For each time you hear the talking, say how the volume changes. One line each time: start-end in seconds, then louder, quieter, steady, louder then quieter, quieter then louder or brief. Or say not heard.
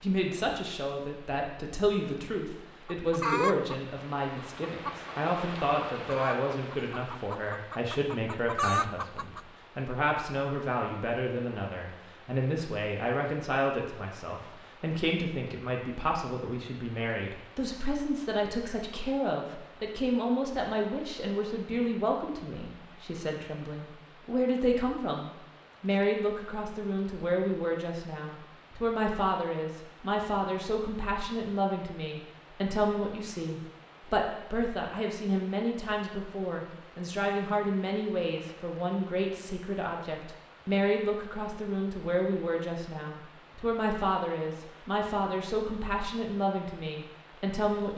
0.0-47.9 steady.